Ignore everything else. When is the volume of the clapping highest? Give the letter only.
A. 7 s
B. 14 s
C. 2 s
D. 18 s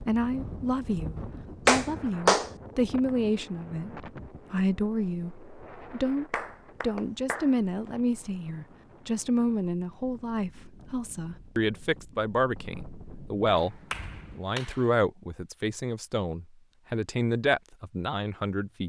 C.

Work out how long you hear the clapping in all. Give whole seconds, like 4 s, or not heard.
4 s.